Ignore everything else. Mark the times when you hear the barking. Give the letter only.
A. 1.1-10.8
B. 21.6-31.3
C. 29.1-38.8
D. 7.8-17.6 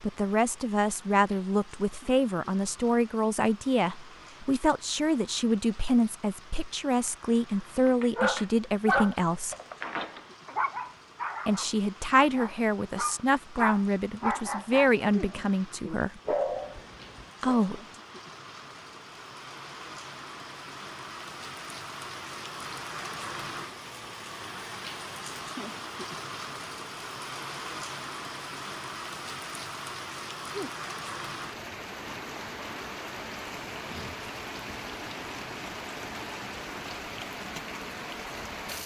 D.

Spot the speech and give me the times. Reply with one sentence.
You can hear the speech from 0.0 to 9.6 s, from 11.4 to 16.2 s and from 17.4 to 17.8 s.